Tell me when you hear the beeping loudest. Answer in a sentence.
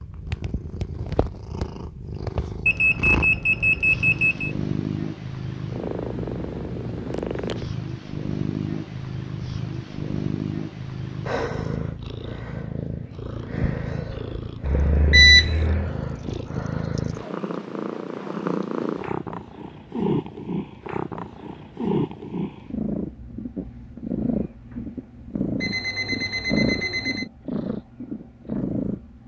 The loudest moment of the beeping is at 15 seconds.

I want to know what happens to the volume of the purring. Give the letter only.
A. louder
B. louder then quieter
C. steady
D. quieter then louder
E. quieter
C.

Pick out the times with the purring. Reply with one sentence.
You can hear the purring from 0.0 to 29.2 s.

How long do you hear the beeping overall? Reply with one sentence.
You can hear the beeping for 5 seconds altogether.